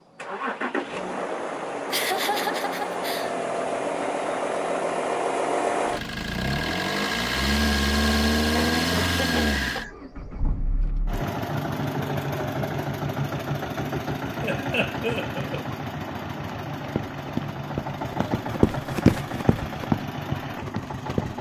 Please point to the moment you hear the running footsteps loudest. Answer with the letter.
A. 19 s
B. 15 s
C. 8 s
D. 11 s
A.